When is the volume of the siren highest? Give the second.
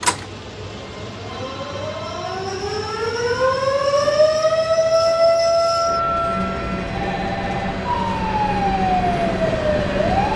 5 s.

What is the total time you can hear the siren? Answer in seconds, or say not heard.
10 s.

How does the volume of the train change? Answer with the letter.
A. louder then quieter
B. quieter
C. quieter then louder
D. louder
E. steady
D.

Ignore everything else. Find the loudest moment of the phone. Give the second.
7 s.